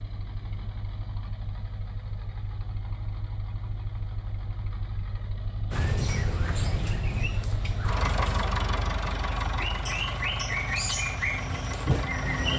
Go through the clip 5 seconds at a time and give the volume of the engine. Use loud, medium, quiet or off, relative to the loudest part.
medium, loud, loud.